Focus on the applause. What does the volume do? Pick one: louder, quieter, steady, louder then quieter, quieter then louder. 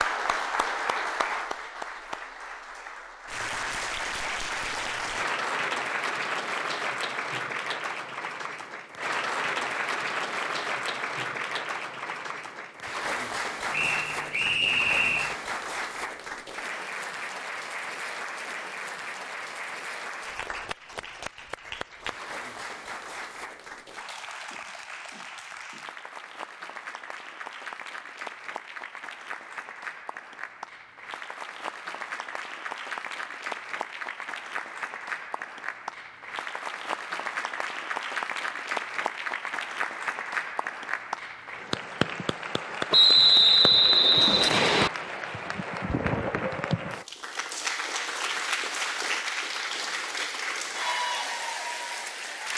quieter then louder.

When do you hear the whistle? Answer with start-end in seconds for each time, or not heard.
13.7-15.3, 42.9-44.9.